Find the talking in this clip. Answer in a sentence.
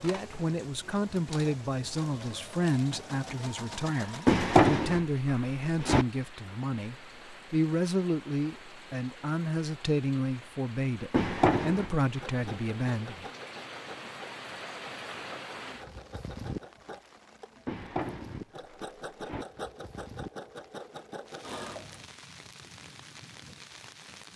You can hear the talking from 0.0 to 13.2 s.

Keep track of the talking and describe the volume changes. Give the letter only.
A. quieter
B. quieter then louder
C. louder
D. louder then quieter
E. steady
E.